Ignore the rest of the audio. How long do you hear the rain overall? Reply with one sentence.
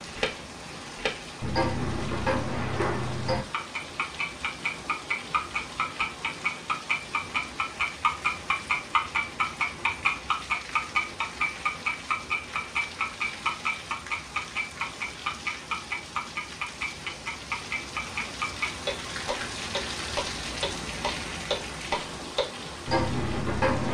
The rain can be heard for 24 seconds in total.